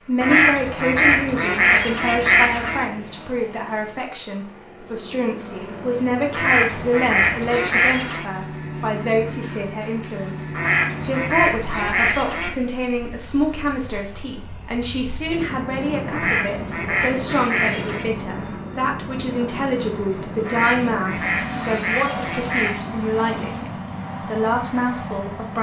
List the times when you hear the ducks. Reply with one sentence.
You can hear the ducks from 0.2 to 2.9 s, from 6.3 to 8.2 s, from 10.5 to 12.6 s, from 16.1 to 18.1 s and from 20.4 to 22.8 s.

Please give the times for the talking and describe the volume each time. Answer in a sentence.
You can hear the talking from 0.0 to 25.5 s, at a steady volume.